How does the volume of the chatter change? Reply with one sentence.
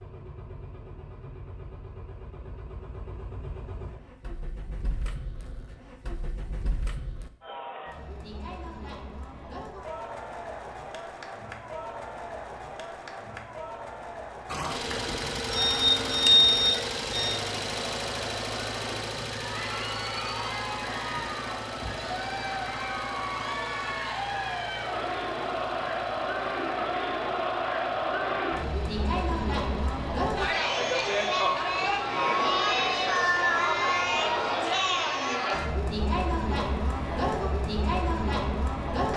The volume of the chatter goes up.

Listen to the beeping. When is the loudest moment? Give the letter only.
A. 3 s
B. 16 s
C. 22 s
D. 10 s
B.